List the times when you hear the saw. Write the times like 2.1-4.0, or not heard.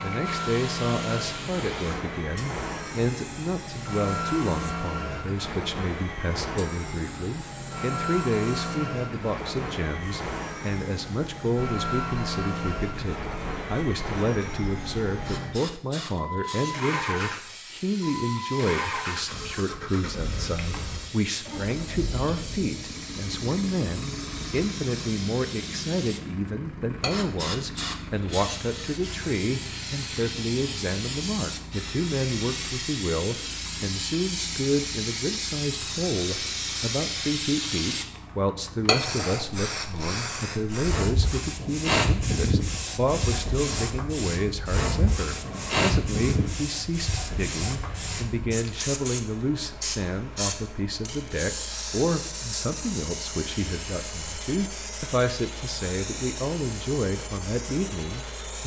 not heard.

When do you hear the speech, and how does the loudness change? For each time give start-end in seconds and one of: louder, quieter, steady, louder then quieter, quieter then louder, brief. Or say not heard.
0.0-58.6 steady.